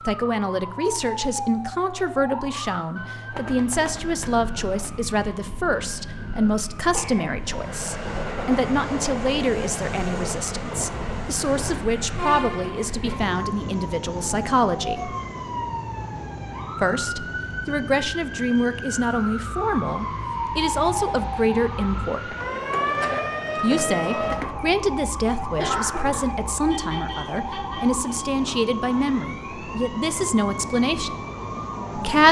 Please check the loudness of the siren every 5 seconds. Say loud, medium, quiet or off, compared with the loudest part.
medium, medium, medium, medium, loud, medium, medium.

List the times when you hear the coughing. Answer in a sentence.
You can hear the coughing from 6.3 to 7.6 s and from 25.6 to 26.2 s.